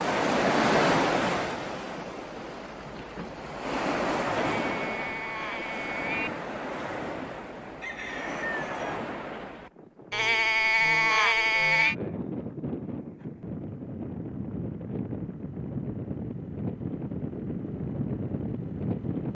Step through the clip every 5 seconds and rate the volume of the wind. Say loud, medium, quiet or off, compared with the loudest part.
loud, medium, medium, medium.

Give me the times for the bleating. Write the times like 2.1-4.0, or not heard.
4.6-6.3, 10.1-11.9.